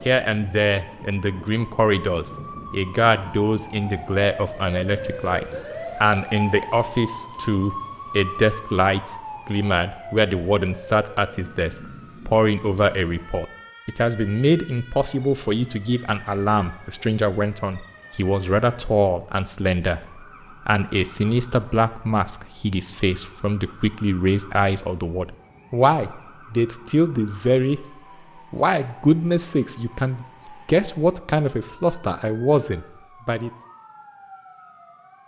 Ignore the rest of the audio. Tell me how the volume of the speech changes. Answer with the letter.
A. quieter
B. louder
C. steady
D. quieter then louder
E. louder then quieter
C.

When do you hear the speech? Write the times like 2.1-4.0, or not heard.
0.0-27.9, 28.5-33.5.